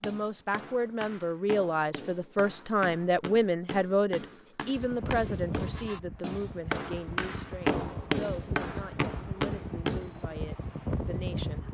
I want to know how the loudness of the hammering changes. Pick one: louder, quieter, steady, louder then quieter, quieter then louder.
louder.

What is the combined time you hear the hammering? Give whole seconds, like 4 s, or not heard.
10 s.